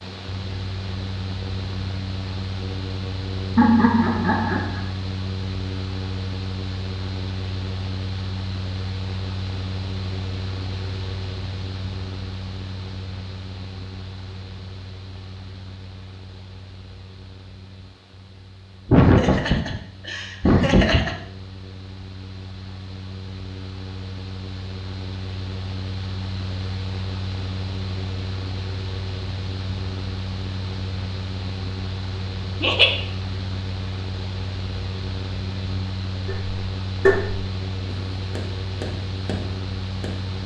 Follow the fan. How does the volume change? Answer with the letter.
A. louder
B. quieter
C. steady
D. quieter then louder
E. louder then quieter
D.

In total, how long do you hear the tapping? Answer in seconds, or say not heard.
4 s.